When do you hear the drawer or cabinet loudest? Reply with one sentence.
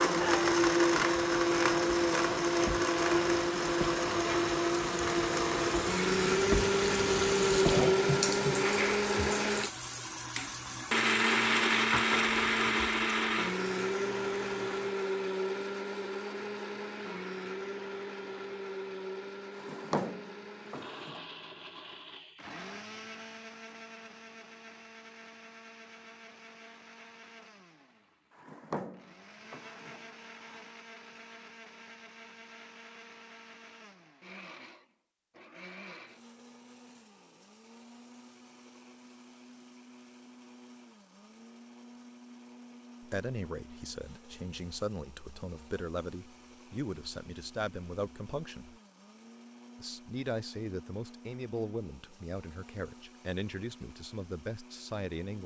The volume of the drawer or cabinet peaks at 20 seconds.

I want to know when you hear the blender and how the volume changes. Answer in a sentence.
You can hear the blender from 0.0 to 55.4 s, getting quieter.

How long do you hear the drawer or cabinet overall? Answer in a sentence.
You can hear the drawer or cabinet for 4 seconds altogether.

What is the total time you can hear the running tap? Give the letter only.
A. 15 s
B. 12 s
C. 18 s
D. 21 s
A.